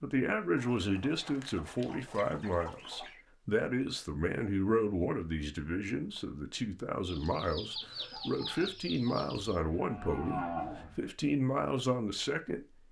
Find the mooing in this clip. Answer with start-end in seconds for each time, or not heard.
9.6-11.1.